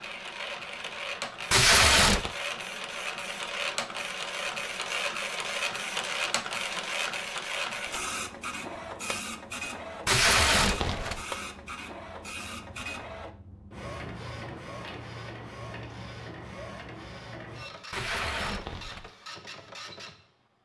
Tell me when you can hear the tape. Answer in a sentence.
You can hear the tape from 1.5 to 2.3 s, from 10.1 to 11.2 s and from 17.9 to 19.1 s.